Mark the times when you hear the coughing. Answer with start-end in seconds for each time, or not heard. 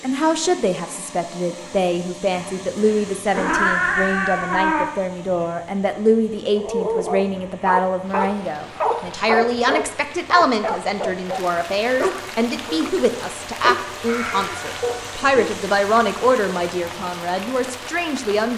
not heard.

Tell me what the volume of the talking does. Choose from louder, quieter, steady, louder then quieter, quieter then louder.
steady.